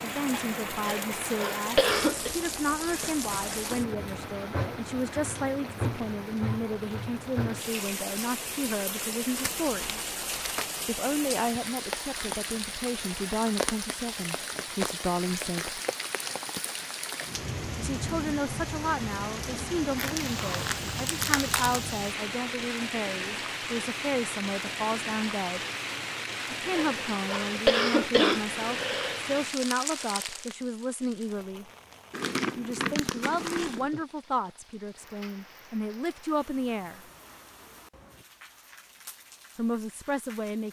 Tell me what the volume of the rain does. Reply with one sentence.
The volume of the rain goes down.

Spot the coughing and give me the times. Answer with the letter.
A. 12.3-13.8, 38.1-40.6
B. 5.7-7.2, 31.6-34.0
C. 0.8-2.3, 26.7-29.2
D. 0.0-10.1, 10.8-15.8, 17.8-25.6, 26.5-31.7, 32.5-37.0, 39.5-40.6
C.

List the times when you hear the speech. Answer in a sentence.
You can hear the speech from 0.0 to 10.1 s, from 10.8 to 15.8 s, from 17.8 to 25.6 s, from 26.5 to 31.7 s, from 32.5 to 37.0 s and from 39.5 to 40.6 s.